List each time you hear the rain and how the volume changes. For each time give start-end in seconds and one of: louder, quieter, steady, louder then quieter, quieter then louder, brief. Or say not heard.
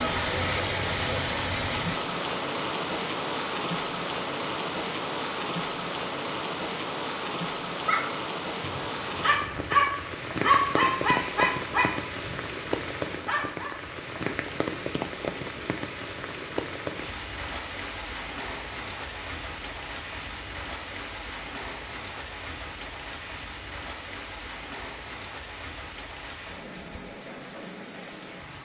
0.0-28.5 quieter.